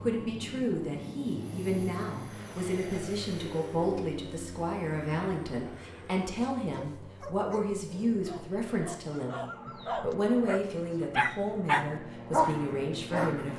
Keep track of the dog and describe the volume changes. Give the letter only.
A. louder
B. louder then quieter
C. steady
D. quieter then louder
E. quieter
A.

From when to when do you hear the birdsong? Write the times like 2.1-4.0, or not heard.
not heard.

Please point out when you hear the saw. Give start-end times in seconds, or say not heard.
not heard.